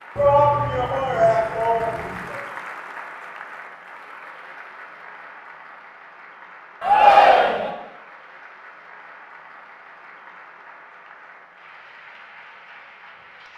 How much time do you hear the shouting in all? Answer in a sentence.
You can hear the shouting for 3 seconds altogether.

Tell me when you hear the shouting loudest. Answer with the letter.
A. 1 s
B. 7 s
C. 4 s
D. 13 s
B.